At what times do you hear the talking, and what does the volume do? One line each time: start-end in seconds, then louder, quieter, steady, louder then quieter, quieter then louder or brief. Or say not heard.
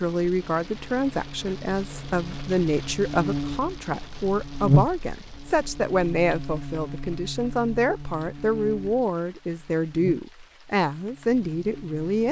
0.0-12.2 steady.